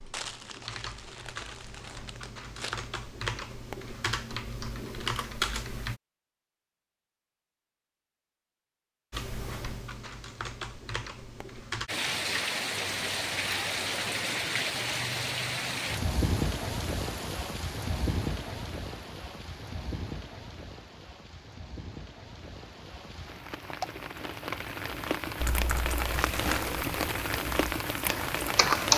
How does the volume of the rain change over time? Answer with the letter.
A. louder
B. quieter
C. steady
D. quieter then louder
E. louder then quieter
D.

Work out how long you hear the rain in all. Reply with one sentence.
The rain can be heard for 17 seconds in total.